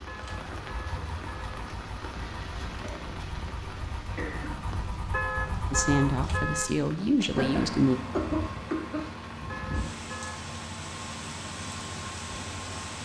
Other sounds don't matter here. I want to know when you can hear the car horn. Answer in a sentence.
The car horn can be heard from 0.1 to 1.6 s, from 5.1 to 6.8 s and from 9.4 to 10.4 s.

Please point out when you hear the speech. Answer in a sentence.
You can hear the speech from 5.7 to 8.0 s.